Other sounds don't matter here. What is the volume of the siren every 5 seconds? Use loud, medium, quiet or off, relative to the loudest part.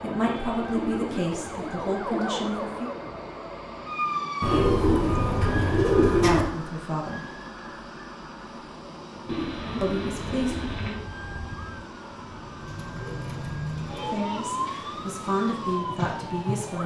loud, medium, loud, loud.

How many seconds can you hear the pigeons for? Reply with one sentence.
The pigeons can be heard for 7 seconds in total.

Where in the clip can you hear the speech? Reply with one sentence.
The speech can be heard from 0.0 to 2.9 s, from 6.2 to 7.2 s, from 9.8 to 10.6 s and from 14.1 to 16.8 s.